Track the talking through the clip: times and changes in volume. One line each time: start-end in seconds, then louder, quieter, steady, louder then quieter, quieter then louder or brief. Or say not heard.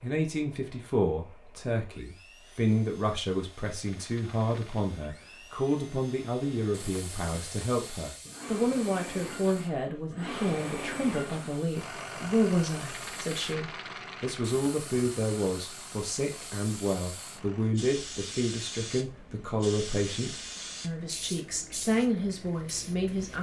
0.0-23.3 steady.